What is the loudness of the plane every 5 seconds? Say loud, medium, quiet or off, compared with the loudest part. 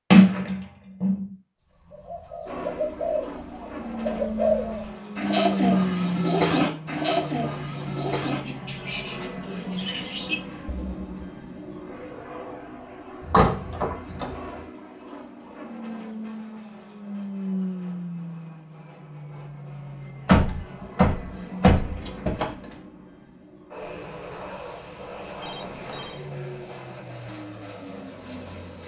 medium, loud, medium, medium, medium, medium.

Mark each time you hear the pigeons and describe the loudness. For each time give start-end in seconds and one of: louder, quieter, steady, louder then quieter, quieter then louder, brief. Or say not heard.
1.9-11.3 louder then quieter.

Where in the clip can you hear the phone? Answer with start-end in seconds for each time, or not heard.
25.4-26.2.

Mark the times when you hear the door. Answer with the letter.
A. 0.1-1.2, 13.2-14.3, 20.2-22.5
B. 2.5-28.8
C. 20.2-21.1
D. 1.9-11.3
A.